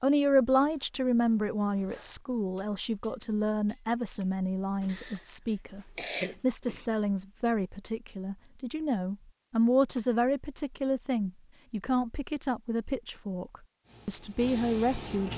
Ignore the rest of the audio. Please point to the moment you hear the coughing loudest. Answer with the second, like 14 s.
6 s.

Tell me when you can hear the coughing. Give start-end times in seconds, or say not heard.
4.8-6.8.